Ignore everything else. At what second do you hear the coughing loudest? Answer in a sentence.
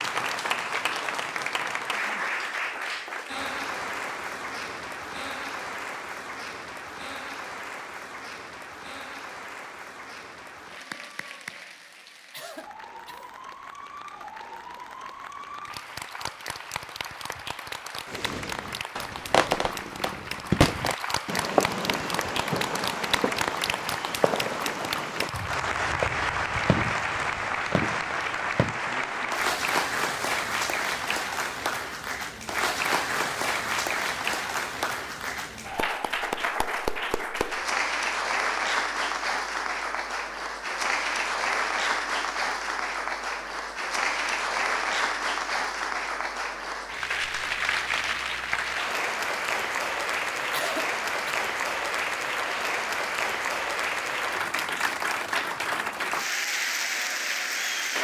The volume of the coughing peaks at 51 seconds.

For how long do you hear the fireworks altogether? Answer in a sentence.
You can hear the fireworks for 11 seconds altogether.